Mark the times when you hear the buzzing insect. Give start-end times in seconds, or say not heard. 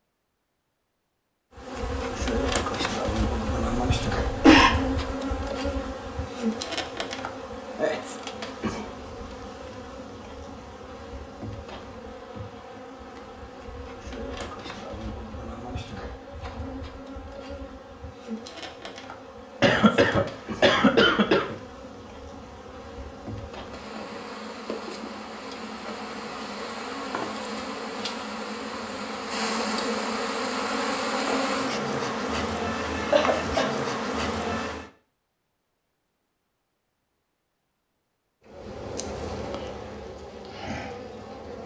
1.6-34.9, 38.5-41.6.